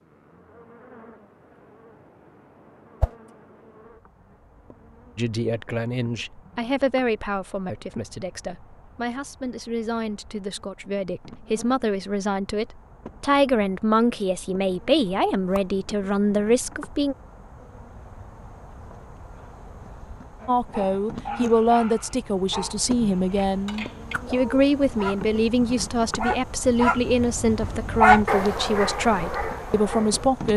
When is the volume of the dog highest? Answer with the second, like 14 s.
28 s.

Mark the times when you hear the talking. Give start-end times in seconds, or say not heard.
5.2-17.1, 20.4-30.5.